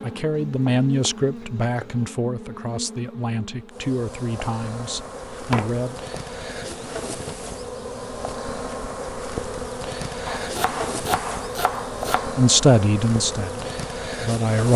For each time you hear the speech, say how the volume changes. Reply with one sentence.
You can hear the speech from 0.0 to 6.0 s, getting quieter; and briefly from 12.3 to 14.7 s.